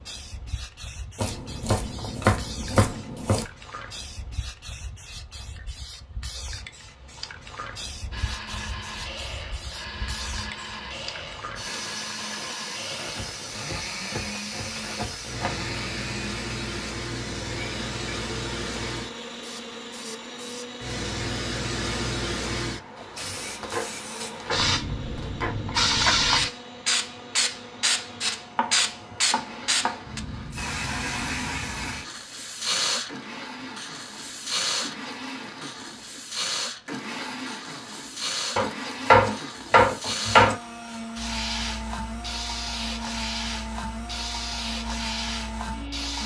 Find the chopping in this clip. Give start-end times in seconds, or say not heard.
1.1-3.5, 13.1-15.6, 22.9-25.6, 28.6-30.1, 38.5-40.5.